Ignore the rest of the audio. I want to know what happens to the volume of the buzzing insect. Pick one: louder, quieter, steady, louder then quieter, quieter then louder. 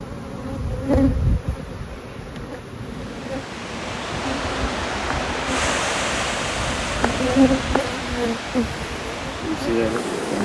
quieter then louder.